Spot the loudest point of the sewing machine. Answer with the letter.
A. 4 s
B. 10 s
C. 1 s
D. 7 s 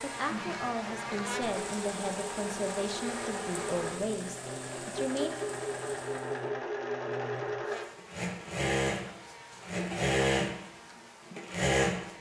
B.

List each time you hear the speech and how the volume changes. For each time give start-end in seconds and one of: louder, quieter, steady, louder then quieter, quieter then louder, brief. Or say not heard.
0.0-5.3 steady.